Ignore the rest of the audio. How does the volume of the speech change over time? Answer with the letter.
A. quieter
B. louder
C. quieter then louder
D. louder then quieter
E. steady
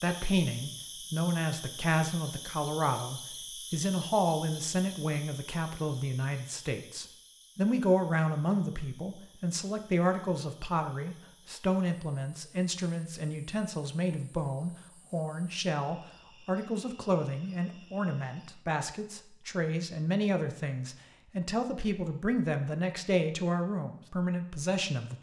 E.